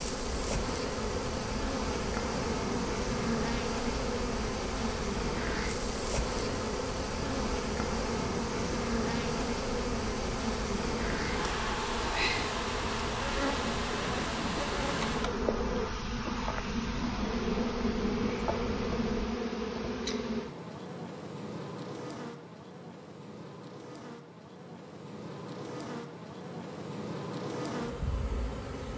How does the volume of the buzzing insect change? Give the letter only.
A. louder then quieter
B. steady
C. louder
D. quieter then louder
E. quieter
E.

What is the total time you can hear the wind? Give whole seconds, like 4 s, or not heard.
19 s.